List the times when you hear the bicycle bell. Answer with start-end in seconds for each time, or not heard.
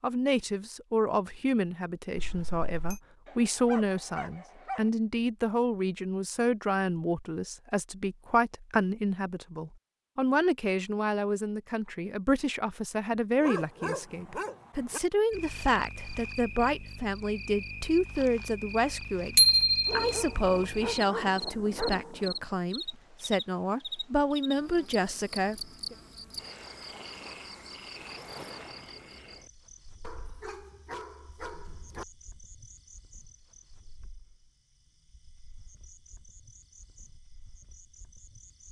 2.1-3.0, 19.4-19.9.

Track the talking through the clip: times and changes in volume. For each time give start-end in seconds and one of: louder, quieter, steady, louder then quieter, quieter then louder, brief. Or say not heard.
0.0-25.9 steady.